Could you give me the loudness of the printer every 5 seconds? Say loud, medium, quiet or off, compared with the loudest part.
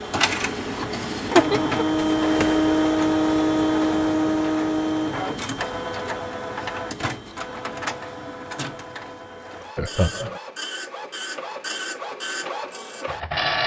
loud, medium, medium.